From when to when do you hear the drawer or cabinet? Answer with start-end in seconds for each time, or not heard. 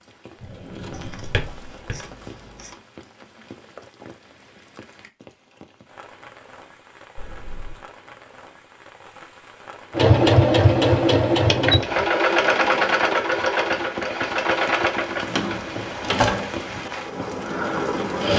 0.4-2.0, 15.2-16.4.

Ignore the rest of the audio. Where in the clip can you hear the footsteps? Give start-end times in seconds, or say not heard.
not heard.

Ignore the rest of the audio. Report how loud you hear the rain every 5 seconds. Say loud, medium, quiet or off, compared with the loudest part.
quiet, quiet, medium, loud.